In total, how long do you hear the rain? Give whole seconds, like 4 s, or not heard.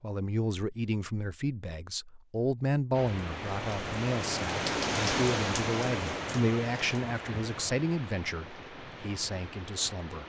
7 s.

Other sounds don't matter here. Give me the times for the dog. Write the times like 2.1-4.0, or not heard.
not heard.